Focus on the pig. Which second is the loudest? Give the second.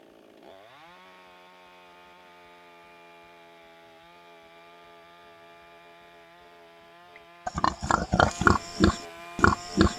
8 s.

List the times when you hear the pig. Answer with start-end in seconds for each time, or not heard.
7.5-9.9.